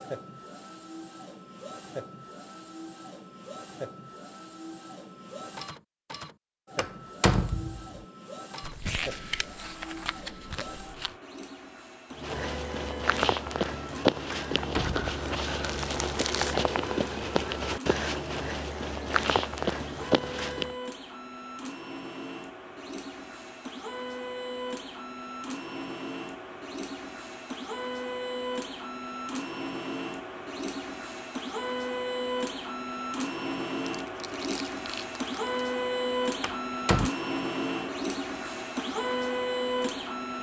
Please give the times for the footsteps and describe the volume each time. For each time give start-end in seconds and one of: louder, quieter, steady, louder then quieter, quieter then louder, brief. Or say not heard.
12.1-20.8 steady.